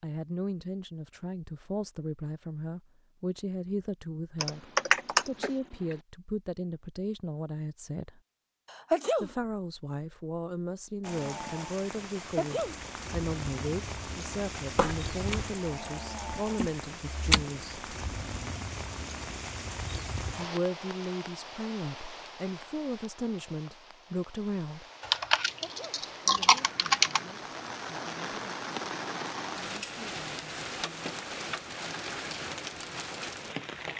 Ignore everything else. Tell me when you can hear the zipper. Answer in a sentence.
The zipper can't be heard in this clip.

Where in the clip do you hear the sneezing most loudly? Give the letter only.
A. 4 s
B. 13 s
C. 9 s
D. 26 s
C.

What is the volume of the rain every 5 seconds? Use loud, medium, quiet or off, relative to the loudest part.
off, off, loud, loud, medium, loud, loud.